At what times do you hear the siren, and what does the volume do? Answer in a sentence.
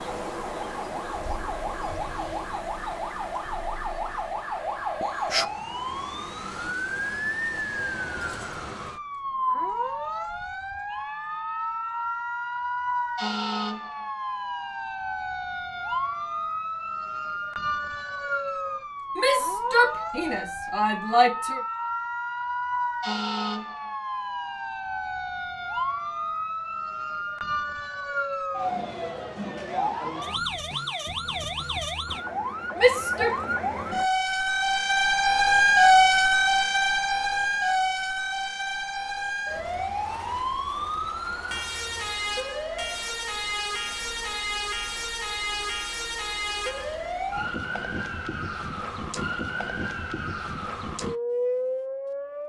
You can hear the siren from 0.0 to 52.4 s, getting louder then quieter.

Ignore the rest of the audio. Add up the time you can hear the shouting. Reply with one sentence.
You can hear the shouting for 3 seconds altogether.